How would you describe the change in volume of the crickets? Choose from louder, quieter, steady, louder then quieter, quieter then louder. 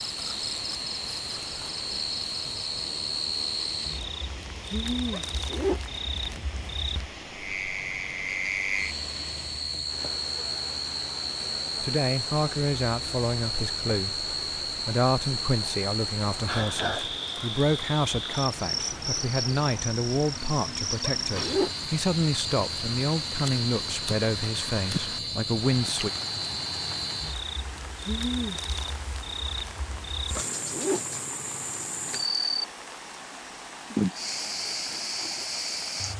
steady.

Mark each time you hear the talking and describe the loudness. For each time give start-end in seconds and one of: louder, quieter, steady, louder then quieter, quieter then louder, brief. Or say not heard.
11.8-26.1 steady.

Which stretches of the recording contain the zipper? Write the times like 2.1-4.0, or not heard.
5.1-6.1, 21.0-21.7, 30.5-31.4.